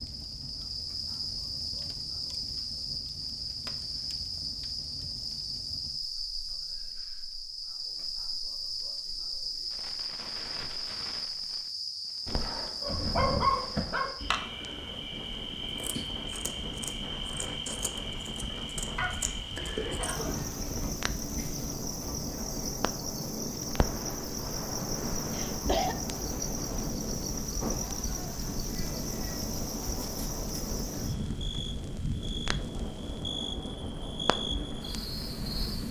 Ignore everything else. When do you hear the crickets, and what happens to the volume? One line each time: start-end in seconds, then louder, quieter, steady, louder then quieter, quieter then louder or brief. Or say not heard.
0.0-35.8 steady.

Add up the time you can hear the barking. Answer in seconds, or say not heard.
4 s.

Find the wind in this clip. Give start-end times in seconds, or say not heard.
14.2-35.8.